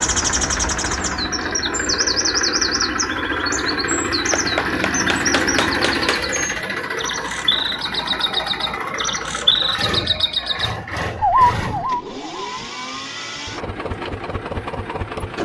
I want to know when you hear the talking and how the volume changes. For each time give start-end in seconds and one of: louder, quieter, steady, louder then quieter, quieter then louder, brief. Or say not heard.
not heard.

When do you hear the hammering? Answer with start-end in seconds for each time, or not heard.
4.3-6.3.